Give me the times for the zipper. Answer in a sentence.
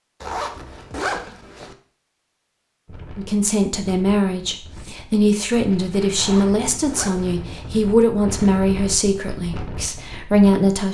The zipper can be heard from 0.2 to 1.8 s and from 6.2 to 7.7 s.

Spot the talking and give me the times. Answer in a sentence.
You can hear the talking from 3.1 to 10.8 s.